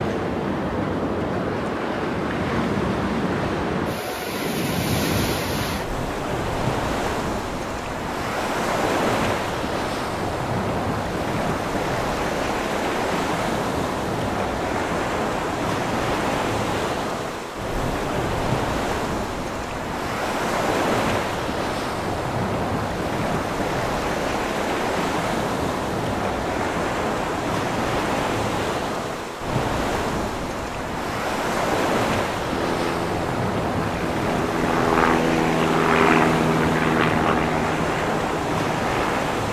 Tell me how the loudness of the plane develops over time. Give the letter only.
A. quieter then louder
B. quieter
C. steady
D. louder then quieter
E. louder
D.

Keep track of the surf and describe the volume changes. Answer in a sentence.
The loudness of the surf stays about the same.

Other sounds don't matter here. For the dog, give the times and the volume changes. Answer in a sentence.
You can't hear the dog here.